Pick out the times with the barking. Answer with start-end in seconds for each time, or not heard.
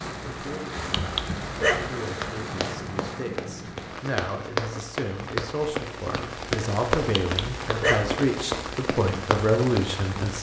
0.9-1.9, 7.2-8.2.